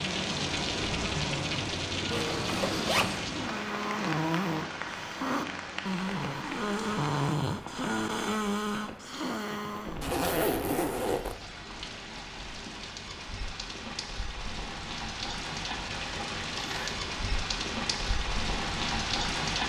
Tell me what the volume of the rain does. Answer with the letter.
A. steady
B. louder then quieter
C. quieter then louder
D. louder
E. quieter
C.